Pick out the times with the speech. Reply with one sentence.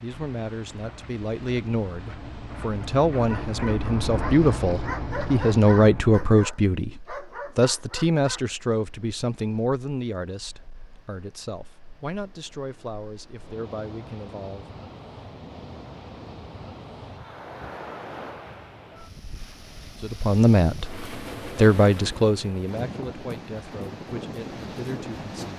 You can hear the speech from 0.0 to 14.8 s and from 20.0 to 25.5 s.